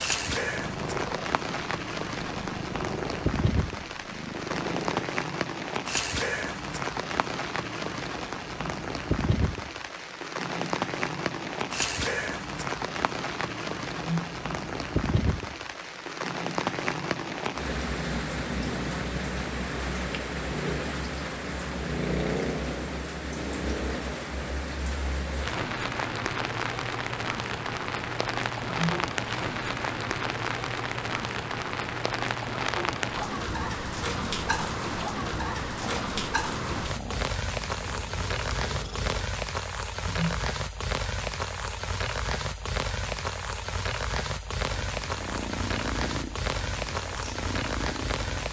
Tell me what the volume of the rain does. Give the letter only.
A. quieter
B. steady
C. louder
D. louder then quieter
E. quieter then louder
B.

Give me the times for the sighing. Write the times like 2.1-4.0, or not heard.
13.9-14.4, 28.6-29.1, 40.0-40.5.